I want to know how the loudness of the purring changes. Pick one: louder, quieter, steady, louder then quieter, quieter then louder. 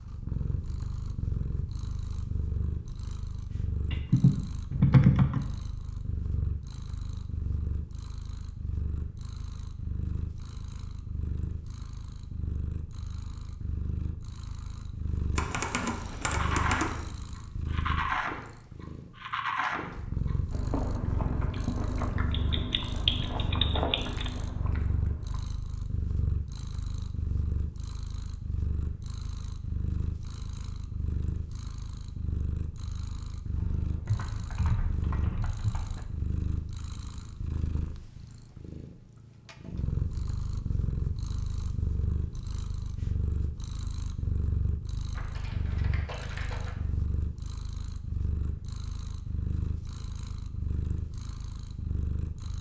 steady.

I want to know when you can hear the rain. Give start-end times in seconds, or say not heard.
not heard.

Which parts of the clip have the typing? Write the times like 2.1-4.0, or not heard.
3.9-5.5, 15.3-17.0, 22.3-24.3, 33.5-36.0, 45.1-46.8.